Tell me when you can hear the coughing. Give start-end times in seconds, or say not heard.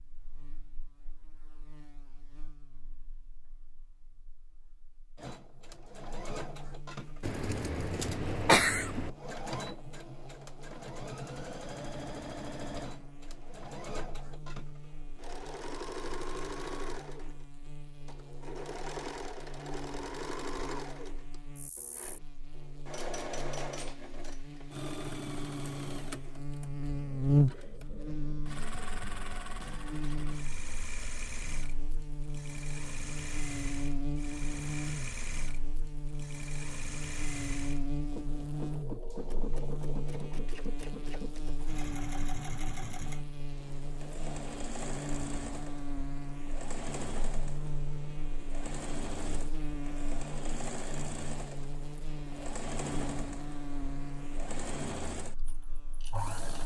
7.2-9.1.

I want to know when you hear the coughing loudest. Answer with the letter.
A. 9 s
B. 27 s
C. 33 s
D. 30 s
A.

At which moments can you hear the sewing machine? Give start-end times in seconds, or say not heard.
5.2-56.6.